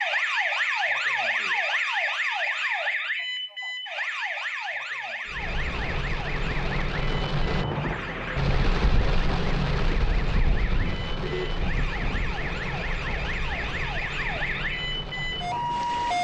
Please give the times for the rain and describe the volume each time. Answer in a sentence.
You can hear the rain from 5.2 to 16.1 s, getting quieter.